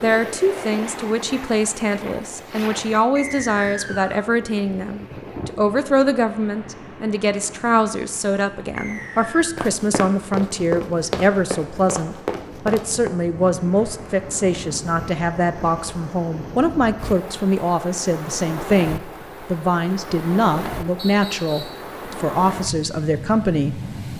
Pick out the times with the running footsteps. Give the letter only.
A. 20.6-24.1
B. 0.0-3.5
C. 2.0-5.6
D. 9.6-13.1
D.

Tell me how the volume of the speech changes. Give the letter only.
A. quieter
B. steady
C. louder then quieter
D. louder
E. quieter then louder
B.